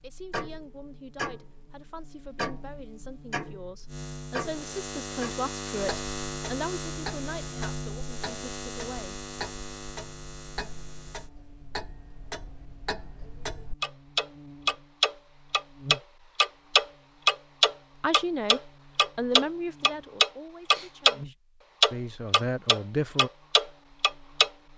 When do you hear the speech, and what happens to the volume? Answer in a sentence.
The speech can be heard from 0.0 to 9.2 s, getting louder then quieter; and from 18.0 to 23.3 s, getting quieter then louder.